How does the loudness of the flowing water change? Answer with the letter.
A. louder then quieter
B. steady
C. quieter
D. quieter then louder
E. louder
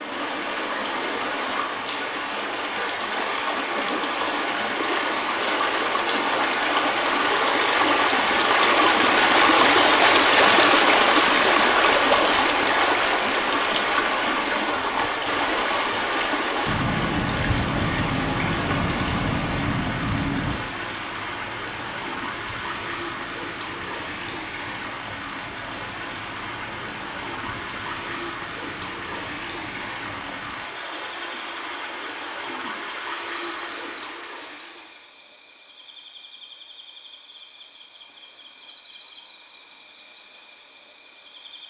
A.